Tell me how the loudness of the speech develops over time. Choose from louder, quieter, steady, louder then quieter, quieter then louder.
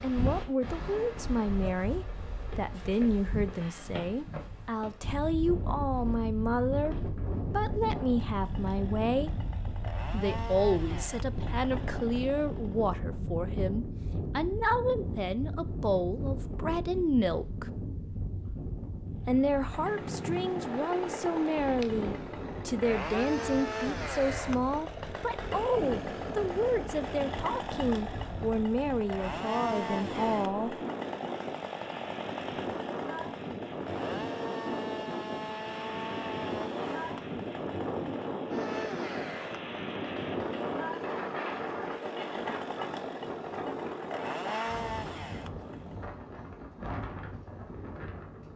steady.